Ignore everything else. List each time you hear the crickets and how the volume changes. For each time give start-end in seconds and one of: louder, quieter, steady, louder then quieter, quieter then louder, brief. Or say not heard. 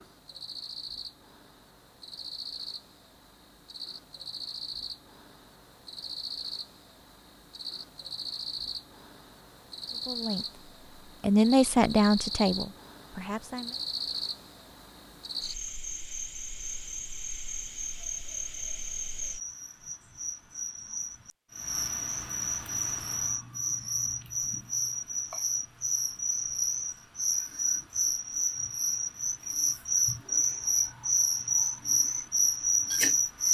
0.0-33.4 louder.